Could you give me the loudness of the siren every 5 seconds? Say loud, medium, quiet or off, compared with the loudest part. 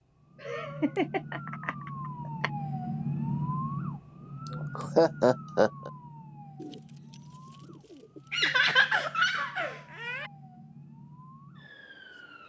loud, medium, quiet.